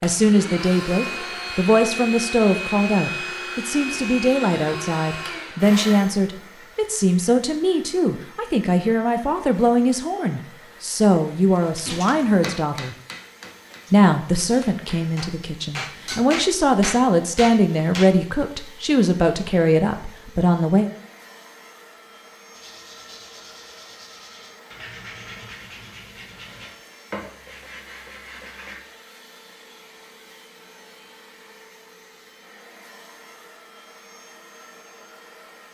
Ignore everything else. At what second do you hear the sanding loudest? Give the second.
27 s.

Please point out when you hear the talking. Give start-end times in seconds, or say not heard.
0.0-12.9, 13.9-20.9.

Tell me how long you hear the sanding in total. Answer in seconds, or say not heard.
6 s.